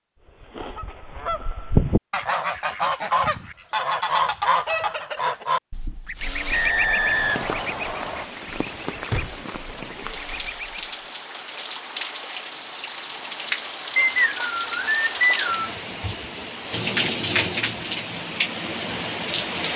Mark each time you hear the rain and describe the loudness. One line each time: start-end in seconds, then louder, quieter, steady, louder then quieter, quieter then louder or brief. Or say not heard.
6.2-19.7 louder.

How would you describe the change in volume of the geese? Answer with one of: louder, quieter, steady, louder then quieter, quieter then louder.
quieter.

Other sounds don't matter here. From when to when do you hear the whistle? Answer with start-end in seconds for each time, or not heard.
6.5-8.2, 13.9-15.8.